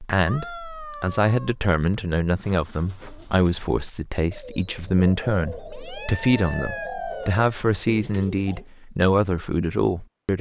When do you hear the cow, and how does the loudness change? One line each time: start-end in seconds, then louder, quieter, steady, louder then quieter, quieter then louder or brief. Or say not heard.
not heard.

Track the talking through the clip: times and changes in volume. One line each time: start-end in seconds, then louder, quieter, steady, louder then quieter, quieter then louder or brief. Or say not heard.
0.0-10.3 steady.